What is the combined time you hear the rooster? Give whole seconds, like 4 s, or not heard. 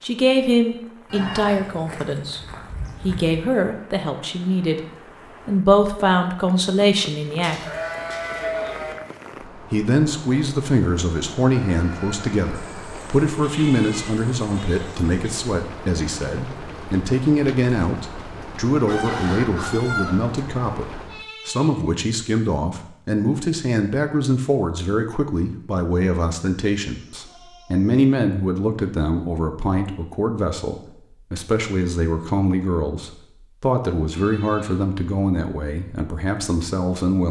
3 s.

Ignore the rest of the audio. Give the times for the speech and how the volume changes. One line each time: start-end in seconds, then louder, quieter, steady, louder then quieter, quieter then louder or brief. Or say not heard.
0.0-2.4 brief
3.0-4.8 brief
5.5-7.6 brief
9.7-37.2 steady.